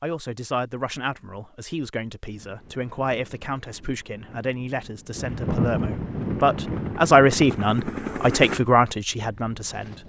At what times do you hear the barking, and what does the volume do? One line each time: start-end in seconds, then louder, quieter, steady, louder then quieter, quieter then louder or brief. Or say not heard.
not heard.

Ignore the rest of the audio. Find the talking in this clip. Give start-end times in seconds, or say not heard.
0.0-10.0.